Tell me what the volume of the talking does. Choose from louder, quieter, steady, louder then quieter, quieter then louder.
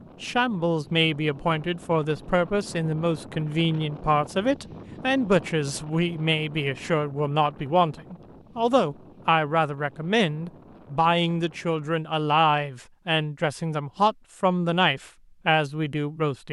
steady.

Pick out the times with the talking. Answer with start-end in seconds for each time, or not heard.
0.2-16.4.